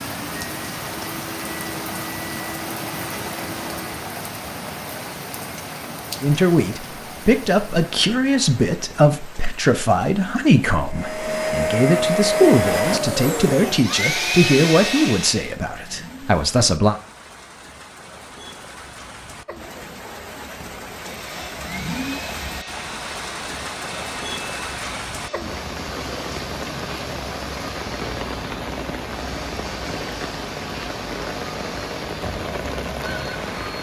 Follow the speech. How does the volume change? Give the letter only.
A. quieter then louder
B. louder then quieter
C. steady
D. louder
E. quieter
C.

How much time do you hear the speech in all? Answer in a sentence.
You can hear the speech for 11 seconds altogether.